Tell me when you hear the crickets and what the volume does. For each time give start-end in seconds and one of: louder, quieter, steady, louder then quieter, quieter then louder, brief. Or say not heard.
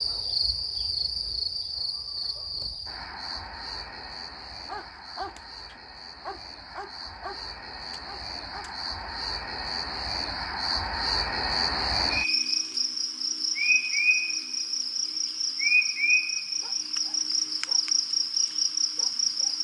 0.0-19.5 quieter then louder.